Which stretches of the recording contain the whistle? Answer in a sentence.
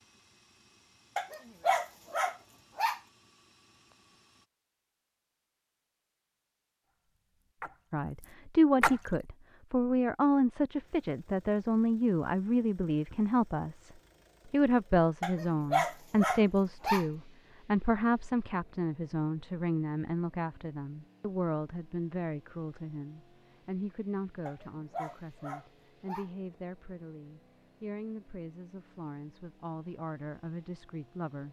You can't hear the whistle here.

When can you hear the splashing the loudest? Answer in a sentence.
The loudest moment of the splashing is at 9 seconds.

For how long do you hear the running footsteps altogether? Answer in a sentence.
The running footsteps can't be heard in this clip.